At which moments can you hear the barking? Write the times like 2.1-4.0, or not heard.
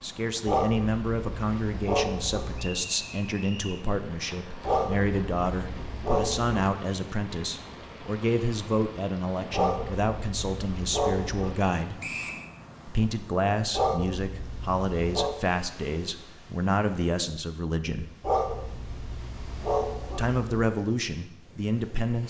0.5-2.9, 4.7-6.5, 9.5-11.6, 13.7-15.4, 18.2-20.4.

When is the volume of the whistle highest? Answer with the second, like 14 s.
12 s.